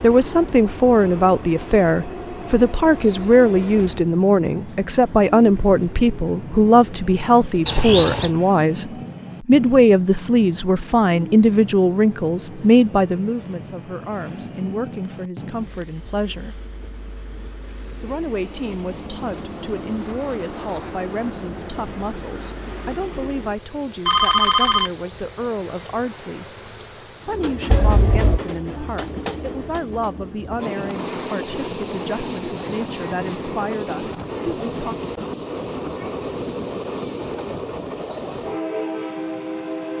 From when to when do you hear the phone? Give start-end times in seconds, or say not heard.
7.7-8.3, 24.1-24.9, 27.7-28.4.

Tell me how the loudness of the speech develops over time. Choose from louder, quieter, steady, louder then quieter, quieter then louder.
quieter.